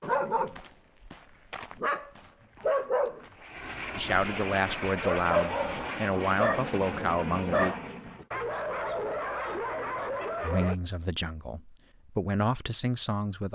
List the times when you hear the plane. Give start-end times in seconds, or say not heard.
3.4-8.2.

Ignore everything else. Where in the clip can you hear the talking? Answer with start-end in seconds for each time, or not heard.
4.0-7.8, 10.4-13.4.